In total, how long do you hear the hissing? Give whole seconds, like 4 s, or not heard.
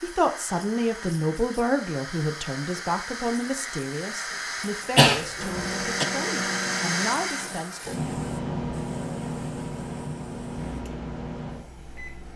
12 s.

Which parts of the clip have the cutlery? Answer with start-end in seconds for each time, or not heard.
not heard.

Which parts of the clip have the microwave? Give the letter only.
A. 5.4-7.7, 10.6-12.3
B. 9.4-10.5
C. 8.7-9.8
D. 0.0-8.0
A.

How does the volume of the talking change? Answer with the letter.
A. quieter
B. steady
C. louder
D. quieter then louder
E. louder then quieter
A.